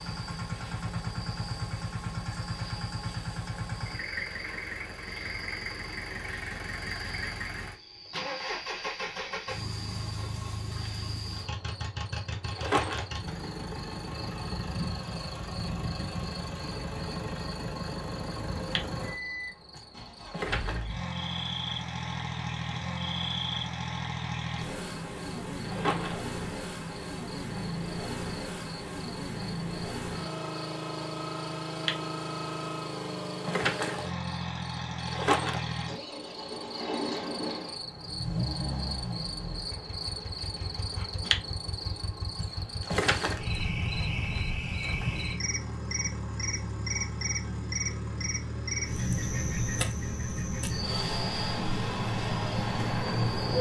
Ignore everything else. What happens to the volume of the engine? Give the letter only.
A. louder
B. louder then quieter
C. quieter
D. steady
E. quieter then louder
D.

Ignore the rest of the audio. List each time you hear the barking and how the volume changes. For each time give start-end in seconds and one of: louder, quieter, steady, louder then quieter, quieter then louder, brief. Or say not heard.
not heard.